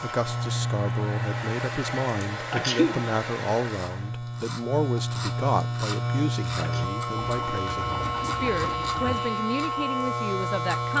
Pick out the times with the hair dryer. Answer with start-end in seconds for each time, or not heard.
0.0-4.2.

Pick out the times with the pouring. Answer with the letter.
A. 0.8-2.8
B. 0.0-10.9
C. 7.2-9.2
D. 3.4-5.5
C.